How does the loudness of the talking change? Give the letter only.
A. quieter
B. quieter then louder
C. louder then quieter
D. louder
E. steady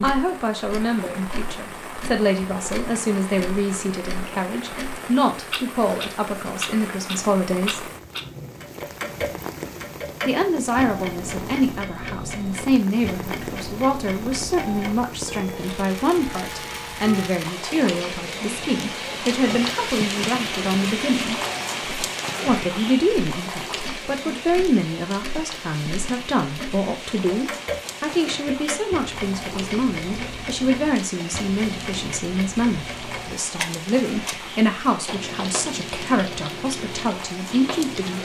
E.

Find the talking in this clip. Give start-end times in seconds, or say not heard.
0.0-7.8, 10.2-21.4, 22.4-38.2.